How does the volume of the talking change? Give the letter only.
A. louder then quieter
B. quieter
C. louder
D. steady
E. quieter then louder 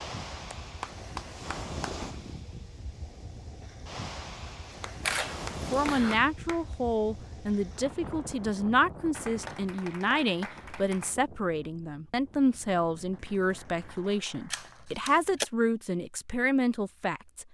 D.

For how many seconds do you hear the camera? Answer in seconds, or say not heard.
2 s.